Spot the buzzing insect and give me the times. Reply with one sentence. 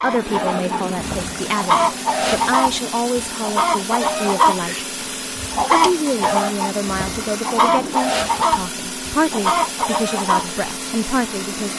The buzzing insect can't be heard in this clip.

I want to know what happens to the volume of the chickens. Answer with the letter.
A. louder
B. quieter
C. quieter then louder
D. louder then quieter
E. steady
E.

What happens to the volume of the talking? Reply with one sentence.
The volume of the talking stays about the same.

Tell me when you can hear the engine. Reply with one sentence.
The engine can be heard from 0.0 to 11.7 s.